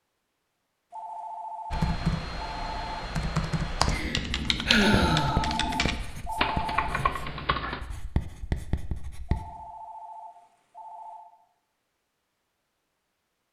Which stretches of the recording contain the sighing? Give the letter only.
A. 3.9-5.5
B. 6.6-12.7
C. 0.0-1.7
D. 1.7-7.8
A.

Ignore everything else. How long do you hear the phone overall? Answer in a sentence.
The phone can be heard for 6 seconds in total.